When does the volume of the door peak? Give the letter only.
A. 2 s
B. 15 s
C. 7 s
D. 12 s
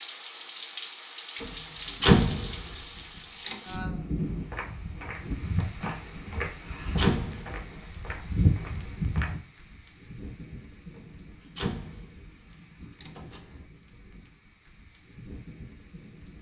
A.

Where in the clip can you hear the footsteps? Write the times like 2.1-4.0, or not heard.
4.2-9.4.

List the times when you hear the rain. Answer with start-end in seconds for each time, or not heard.
0.0-16.3.